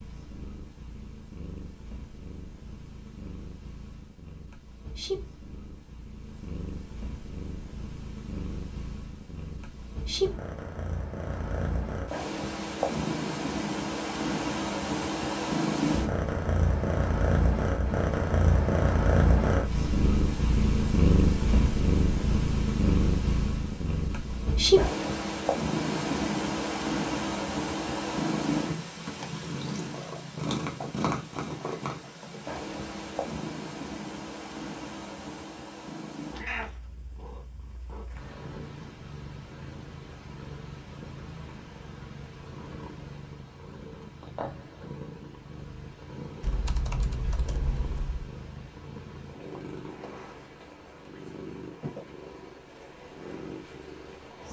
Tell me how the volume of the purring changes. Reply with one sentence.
The loudness of the purring goes up, then down.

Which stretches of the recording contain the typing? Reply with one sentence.
You can hear the typing from 46.4 to 48.3 s.